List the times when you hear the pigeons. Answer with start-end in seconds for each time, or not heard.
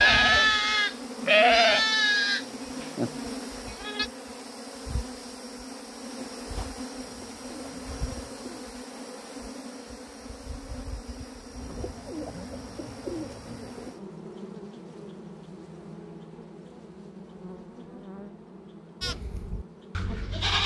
7.0-8.7, 11.6-13.9.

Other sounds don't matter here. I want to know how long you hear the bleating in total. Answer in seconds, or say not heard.
6 s.